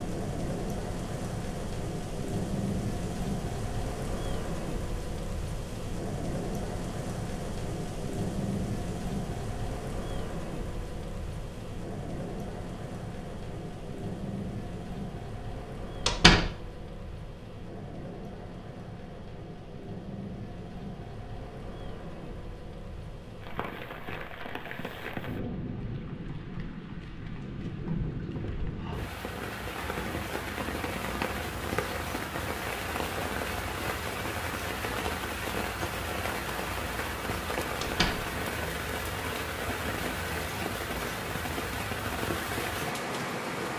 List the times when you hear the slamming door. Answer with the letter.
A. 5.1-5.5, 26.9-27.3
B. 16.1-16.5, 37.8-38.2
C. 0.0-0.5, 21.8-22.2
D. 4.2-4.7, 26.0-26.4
B.